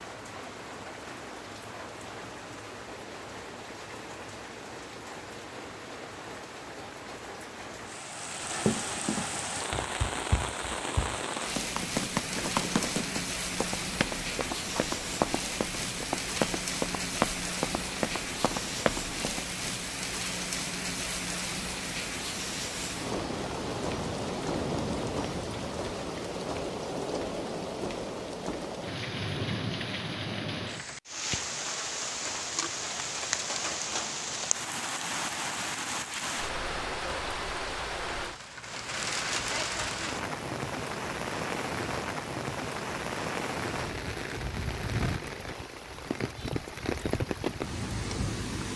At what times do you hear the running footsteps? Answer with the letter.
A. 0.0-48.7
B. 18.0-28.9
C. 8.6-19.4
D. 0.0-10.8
C.